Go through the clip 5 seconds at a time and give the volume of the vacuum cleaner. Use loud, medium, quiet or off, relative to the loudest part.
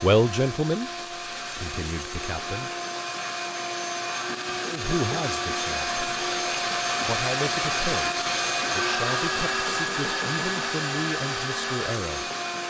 medium, loud, loud.